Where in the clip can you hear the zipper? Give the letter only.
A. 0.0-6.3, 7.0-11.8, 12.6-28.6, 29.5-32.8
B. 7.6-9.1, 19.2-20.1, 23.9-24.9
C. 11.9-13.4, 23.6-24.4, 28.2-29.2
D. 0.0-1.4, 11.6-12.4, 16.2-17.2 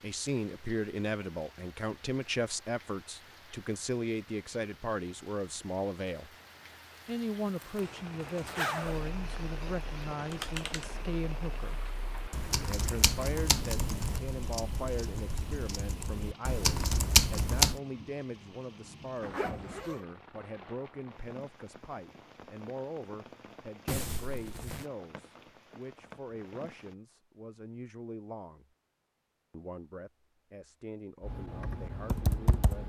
B.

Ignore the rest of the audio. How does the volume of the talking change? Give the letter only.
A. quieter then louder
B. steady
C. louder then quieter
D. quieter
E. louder
D.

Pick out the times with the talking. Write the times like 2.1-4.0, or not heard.
0.0-6.3, 7.0-11.8, 12.6-28.6, 29.5-32.8.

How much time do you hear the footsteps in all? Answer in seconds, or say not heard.
not heard.